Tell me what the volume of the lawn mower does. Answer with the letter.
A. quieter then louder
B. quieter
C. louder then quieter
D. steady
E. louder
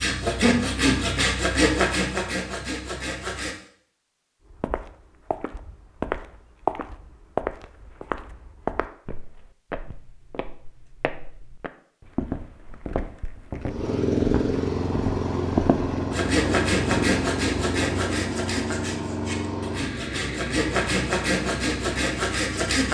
B.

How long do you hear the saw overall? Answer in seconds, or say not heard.
10 s.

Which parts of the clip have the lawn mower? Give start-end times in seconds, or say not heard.
13.6-22.8.